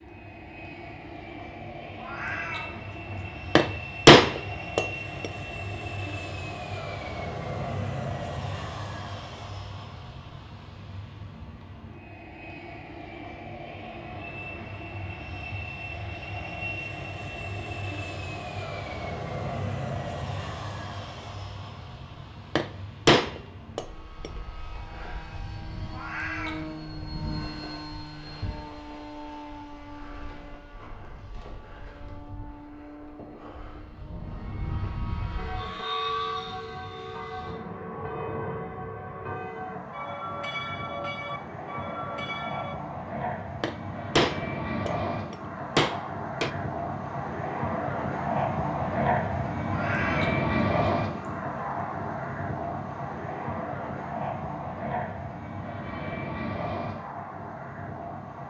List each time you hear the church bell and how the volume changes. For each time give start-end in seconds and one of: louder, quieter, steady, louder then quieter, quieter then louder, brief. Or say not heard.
35.4-42.8 steady.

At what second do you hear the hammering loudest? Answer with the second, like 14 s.
4 s.